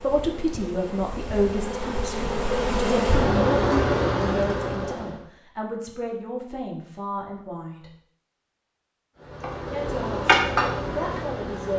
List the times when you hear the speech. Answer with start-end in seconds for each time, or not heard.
0.0-7.9, 9.7-11.7.